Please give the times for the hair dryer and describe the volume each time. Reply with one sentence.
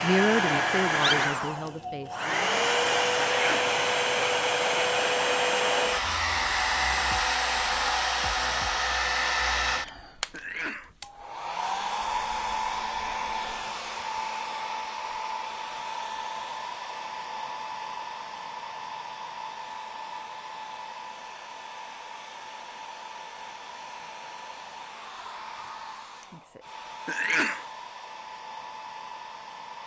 The hair dryer can be heard from 0.0 to 29.8 s, getting quieter.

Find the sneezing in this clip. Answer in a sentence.
You can hear the sneezing from 3.3 to 3.8 s, from 10.3 to 10.9 s and from 27.1 to 27.6 s.